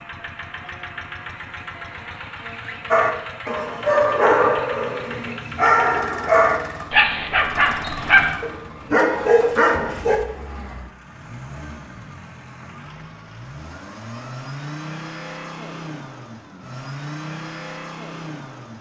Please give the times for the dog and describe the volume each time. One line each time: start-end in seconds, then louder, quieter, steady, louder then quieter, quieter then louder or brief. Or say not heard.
2.9-10.2 steady.